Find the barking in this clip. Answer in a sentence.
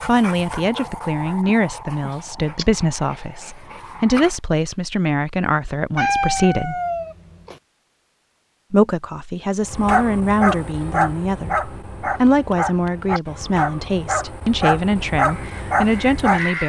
You can hear the barking from 0.0 to 4.3 s and from 9.7 to 16.4 s.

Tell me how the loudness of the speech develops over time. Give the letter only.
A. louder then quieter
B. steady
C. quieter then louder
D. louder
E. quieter
B.